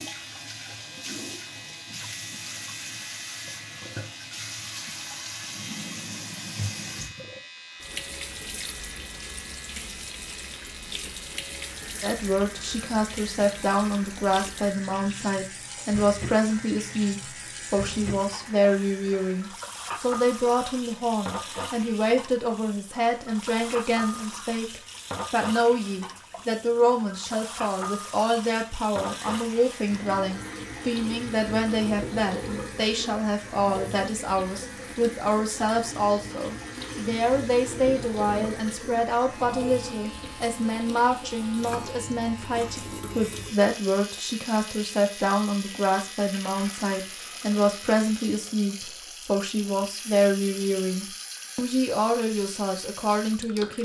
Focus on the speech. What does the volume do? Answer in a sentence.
The loudness of the speech stays about the same.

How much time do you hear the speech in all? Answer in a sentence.
The speech can be heard for 42 seconds in total.